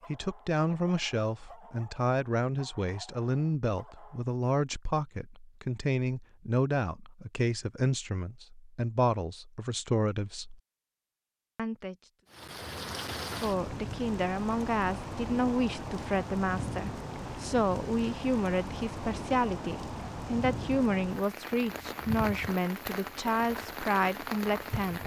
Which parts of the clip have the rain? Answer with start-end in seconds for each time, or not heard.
12.3-25.0.